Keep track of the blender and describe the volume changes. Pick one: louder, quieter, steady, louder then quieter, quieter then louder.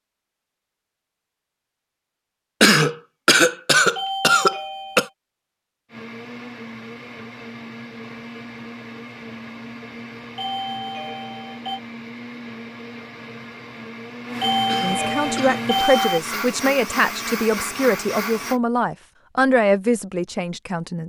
louder.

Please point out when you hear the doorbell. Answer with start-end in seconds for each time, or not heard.
4.0-5.1, 10.3-11.8, 14.4-16.2.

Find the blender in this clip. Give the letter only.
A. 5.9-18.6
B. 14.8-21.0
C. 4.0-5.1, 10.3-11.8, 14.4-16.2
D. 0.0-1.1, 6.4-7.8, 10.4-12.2
A.